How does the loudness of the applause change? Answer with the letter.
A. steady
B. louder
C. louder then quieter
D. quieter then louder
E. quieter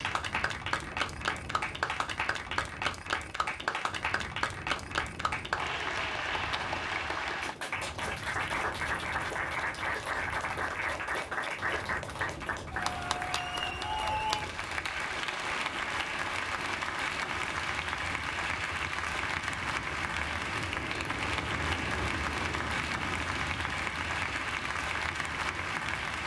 A.